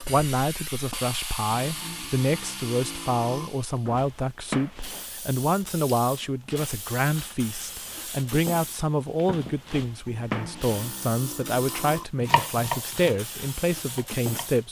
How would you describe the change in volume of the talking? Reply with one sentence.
The volume of the talking stays about the same.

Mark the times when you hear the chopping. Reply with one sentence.
You can hear the chopping from 12.2 to 14.6 s.